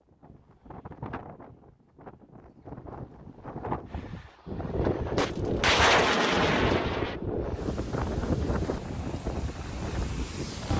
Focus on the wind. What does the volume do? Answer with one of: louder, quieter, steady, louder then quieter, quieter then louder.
louder.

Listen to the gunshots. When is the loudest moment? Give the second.
6 s.